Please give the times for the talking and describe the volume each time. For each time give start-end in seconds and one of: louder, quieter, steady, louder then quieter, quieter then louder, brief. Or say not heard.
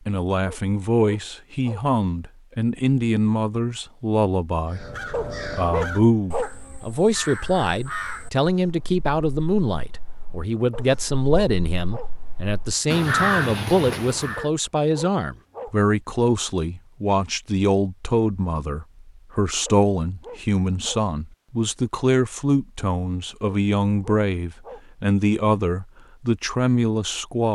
0.1-27.5 steady.